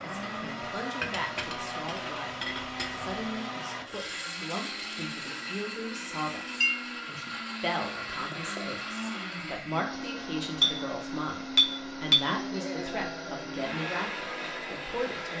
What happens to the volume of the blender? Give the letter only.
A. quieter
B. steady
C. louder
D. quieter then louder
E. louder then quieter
B.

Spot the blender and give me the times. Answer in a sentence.
You can hear the blender from 0.0 to 15.3 s.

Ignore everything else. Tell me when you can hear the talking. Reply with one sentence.
The talking can be heard from 0.0 to 15.3 s.